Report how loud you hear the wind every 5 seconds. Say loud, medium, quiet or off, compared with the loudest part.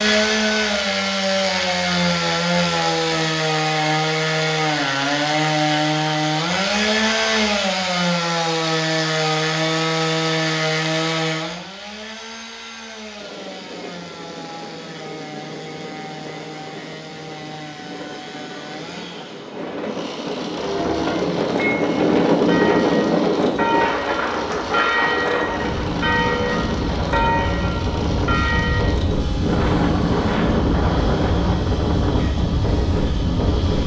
off, off, quiet, quiet, loud, loud, loud.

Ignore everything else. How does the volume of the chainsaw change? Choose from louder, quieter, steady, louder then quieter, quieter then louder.
quieter.